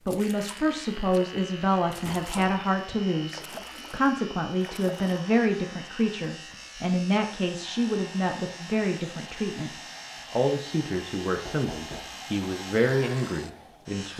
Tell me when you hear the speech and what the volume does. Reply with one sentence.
You can hear the speech from 0.0 to 14.1 s, at a steady volume.